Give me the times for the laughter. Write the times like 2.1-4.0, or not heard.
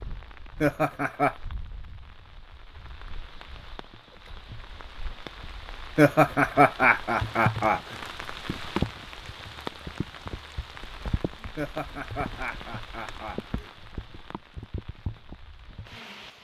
0.6-1.4, 6.0-8.0, 11.6-13.7.